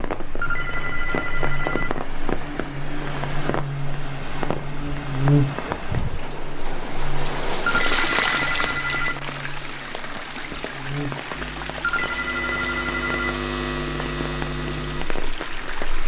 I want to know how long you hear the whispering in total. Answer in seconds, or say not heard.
not heard.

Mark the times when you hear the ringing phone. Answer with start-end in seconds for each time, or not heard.
0.4-1.9, 7.7-9.2, 11.8-13.3.